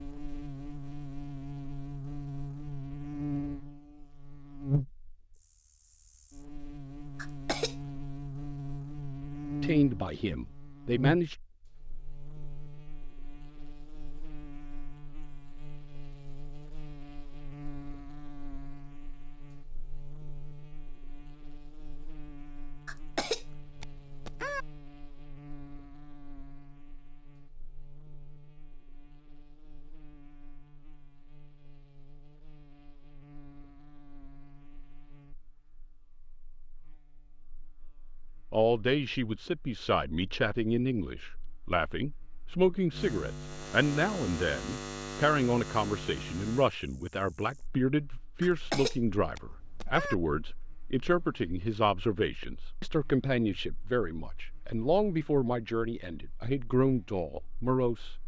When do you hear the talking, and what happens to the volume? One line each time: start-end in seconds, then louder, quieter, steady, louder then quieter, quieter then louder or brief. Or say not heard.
9.6-11.3 brief
38.5-58.1 steady.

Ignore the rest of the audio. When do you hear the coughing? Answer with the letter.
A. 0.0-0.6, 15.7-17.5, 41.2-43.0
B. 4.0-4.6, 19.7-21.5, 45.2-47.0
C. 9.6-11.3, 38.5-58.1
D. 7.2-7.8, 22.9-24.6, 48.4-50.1
D.